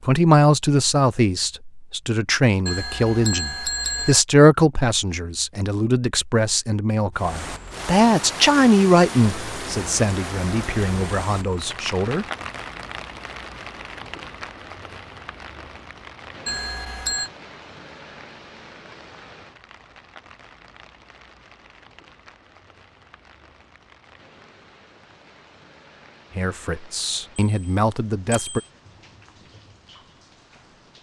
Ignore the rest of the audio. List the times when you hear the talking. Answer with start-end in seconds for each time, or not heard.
0.0-12.2, 26.4-28.6.